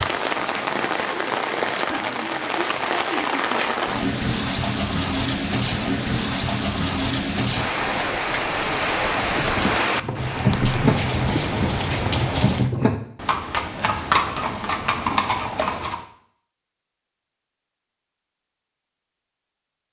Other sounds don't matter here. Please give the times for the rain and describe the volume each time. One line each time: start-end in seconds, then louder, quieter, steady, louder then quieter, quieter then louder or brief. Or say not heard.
0.0-12.8 steady.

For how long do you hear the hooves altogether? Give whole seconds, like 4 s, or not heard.
7 s.